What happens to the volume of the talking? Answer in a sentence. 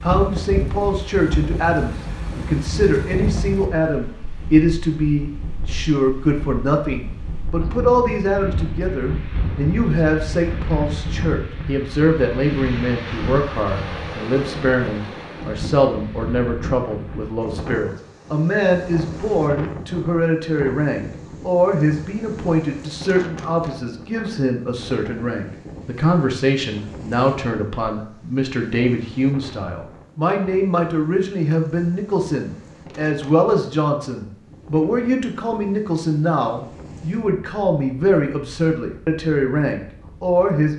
The loudness of the talking stays about the same.